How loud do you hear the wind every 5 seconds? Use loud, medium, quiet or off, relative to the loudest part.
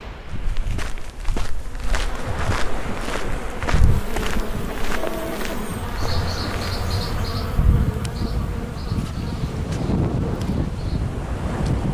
medium, loud, loud.